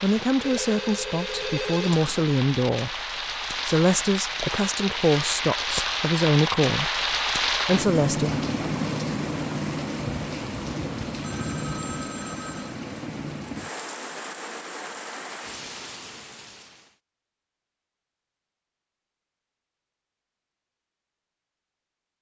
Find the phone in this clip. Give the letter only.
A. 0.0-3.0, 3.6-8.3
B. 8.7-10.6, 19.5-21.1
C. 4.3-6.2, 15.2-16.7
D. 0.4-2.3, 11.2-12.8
D.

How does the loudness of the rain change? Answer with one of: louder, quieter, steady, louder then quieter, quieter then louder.
louder then quieter.